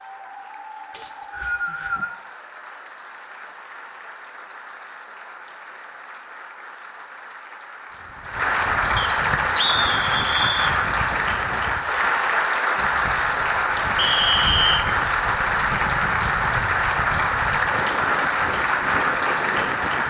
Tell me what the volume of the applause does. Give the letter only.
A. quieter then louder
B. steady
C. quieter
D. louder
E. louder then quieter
D.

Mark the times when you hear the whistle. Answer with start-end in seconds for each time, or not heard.
0.9-2.1, 8.9-10.8, 13.9-14.8.